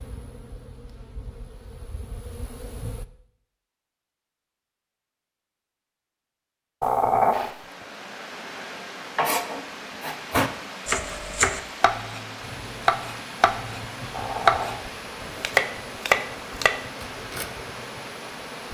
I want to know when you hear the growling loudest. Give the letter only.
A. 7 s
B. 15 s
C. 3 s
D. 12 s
A.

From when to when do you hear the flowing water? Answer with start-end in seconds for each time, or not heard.
7.3-18.6.